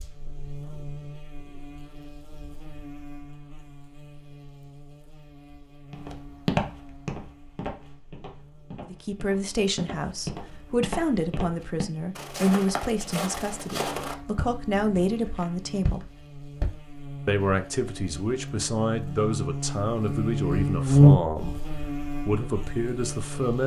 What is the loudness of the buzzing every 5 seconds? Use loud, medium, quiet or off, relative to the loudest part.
quiet, quiet, quiet, quiet, loud.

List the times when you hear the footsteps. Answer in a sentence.
The footsteps can be heard from 5.9 to 16.8 s.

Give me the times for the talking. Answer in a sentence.
You can hear the talking from 8.8 to 16.1 s and from 17.2 to 23.6 s.